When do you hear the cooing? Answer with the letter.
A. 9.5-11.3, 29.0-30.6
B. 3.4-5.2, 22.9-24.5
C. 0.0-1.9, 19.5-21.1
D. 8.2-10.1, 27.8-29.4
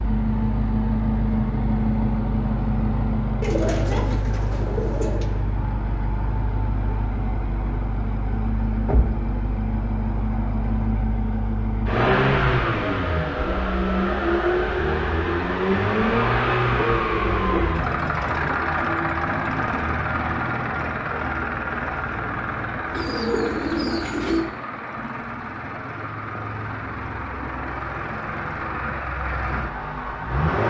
B.